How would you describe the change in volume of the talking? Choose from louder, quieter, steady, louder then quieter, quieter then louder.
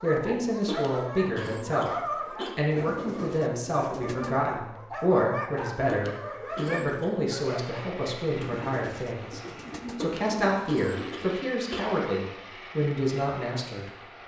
steady.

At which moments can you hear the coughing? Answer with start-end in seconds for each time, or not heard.
0.7-2.5, 5.8-7.1, 10.0-11.8.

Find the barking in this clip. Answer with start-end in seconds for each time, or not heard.
0.0-7.8.